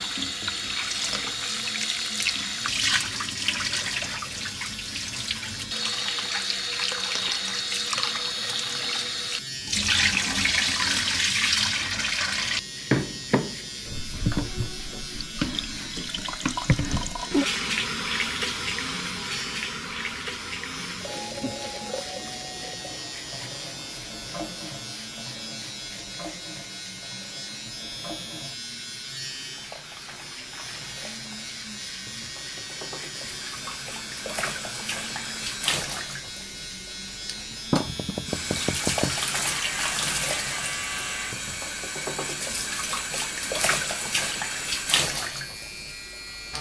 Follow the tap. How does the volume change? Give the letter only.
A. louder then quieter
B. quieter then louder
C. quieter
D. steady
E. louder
B.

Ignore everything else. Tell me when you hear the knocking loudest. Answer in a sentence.
The loudest moment of the knocking is at 39 seconds.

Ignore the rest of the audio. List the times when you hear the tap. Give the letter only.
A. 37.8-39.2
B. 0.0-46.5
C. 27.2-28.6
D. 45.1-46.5
B.